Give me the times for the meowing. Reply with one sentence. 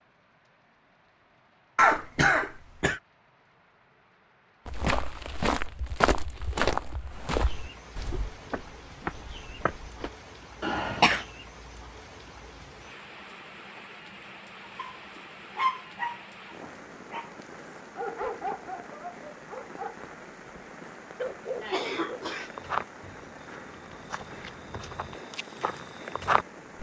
The meowing can't be heard in this clip.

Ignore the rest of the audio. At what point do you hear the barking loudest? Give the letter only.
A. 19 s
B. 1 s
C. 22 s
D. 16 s
D.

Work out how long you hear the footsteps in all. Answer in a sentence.
You can hear the footsteps for 10 seconds altogether.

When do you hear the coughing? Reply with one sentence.
You can hear the coughing from 1.8 to 3.0 s, from 10.6 to 11.2 s and from 21.6 to 22.5 s.